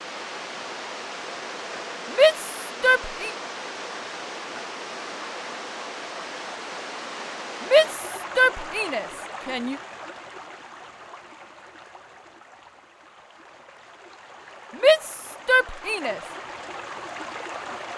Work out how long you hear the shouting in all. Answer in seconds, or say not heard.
5 s.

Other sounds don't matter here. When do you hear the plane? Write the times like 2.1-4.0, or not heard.
not heard.